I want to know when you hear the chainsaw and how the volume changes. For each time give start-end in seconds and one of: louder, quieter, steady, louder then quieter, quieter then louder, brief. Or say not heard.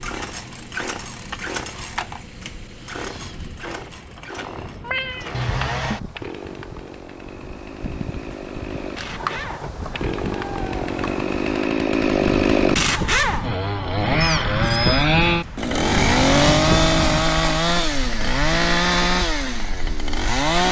0.0-20.6 louder.